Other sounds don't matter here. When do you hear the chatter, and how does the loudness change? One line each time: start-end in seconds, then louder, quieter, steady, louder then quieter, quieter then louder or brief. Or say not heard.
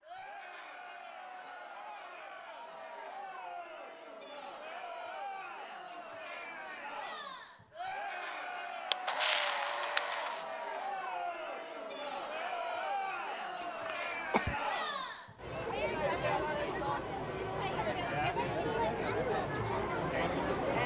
0.0-20.8 louder.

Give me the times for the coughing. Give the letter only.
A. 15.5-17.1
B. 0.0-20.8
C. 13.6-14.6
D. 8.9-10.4
C.